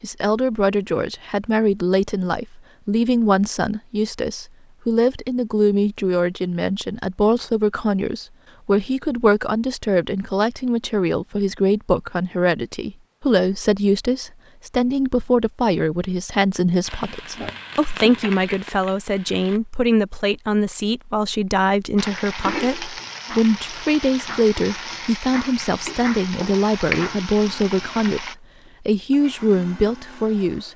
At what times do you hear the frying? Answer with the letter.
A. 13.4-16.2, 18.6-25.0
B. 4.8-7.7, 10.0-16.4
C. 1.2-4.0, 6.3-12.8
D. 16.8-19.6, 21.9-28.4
D.